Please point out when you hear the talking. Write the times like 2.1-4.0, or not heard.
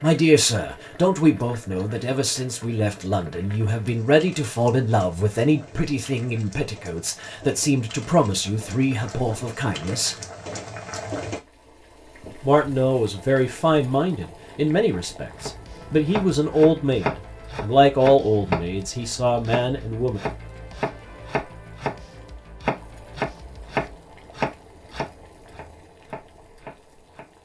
0.0-10.2, 12.4-20.2.